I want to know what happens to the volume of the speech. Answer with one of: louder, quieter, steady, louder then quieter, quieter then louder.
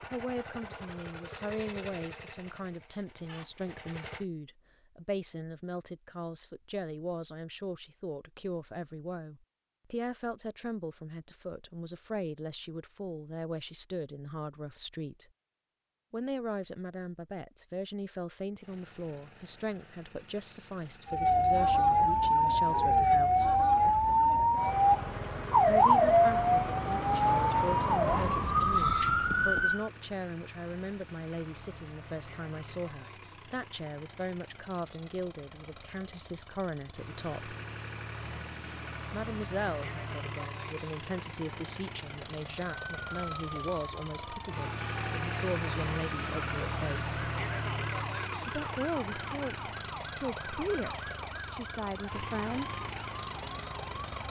steady.